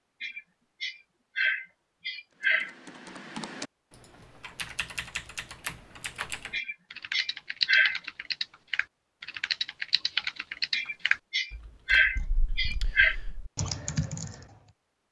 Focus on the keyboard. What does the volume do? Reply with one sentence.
The loudness of the keyboard goes up, then down.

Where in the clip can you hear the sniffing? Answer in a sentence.
The sniffing can be heard from 0.2 to 2.8 s, from 6.5 to 8.0 s and from 10.7 to 13.2 s.